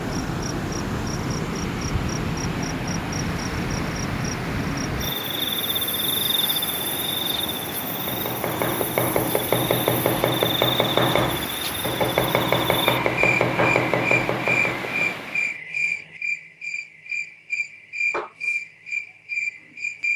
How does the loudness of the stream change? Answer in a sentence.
The volume of the stream stays about the same.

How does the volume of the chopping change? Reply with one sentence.
The volume of the chopping stays about the same.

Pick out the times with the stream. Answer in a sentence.
You can hear the stream from 0.0 to 15.6 s.